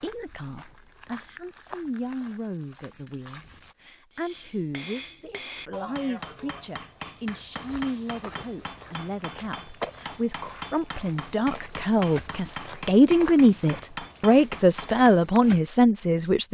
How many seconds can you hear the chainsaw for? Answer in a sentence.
You can't hear the chainsaw here.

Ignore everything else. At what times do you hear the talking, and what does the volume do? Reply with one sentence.
You can hear the talking from 0.0 to 16.4 s, getting louder.